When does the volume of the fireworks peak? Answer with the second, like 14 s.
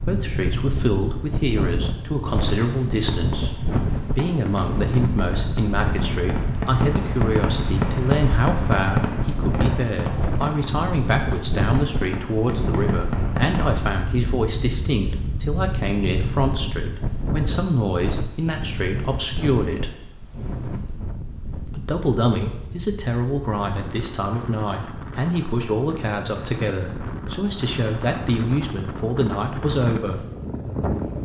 8 s.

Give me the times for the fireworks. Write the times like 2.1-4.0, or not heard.
2.5-13.7.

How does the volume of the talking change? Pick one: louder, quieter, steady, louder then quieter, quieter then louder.
steady.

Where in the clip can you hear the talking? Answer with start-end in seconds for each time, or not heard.
0.0-19.9, 21.6-30.2.